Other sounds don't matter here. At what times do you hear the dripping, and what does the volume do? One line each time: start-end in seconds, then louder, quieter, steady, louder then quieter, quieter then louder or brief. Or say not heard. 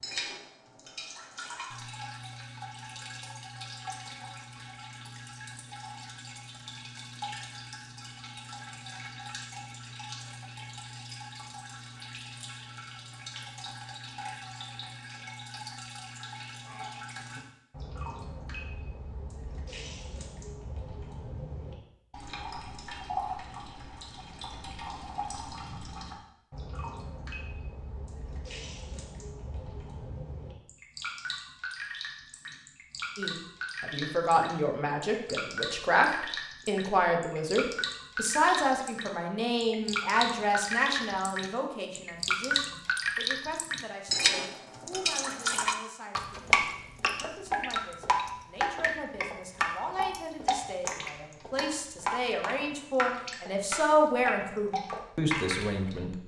0.0-56.1 louder.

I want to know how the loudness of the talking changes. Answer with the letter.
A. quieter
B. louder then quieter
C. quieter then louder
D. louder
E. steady
C.